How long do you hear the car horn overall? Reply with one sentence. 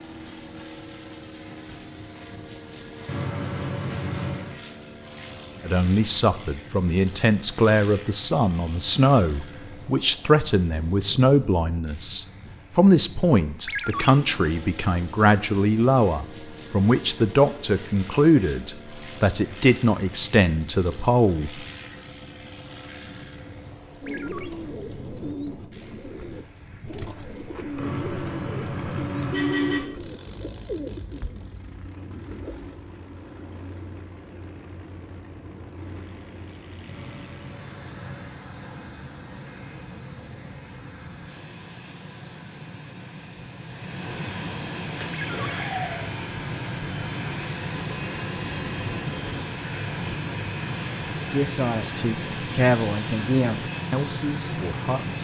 The car horn can be heard for 5 seconds in total.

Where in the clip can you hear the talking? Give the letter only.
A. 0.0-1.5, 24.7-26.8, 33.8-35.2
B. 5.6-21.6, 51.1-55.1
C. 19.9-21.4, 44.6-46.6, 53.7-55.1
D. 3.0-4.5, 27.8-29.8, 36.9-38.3
B.